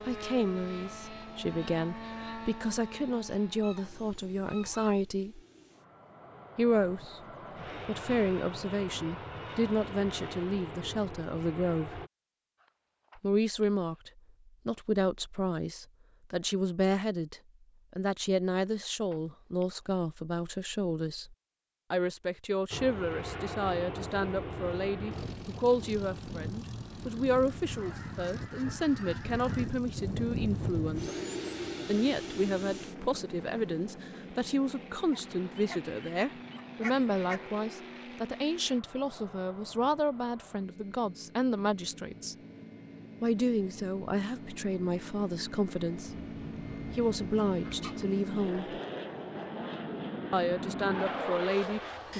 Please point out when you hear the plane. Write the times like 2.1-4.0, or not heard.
0.0-12.1, 22.7-52.1.